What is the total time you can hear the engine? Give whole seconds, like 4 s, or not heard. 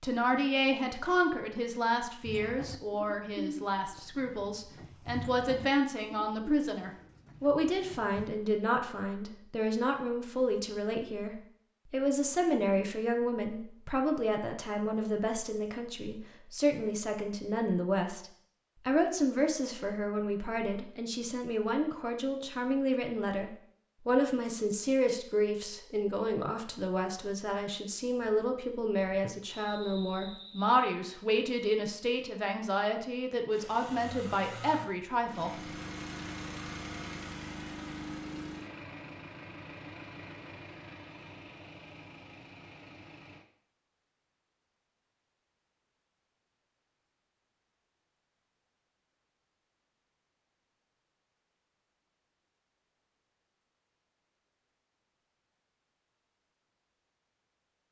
10 s.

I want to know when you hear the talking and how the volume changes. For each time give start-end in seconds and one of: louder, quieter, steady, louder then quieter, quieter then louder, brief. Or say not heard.
0.0-35.5 steady.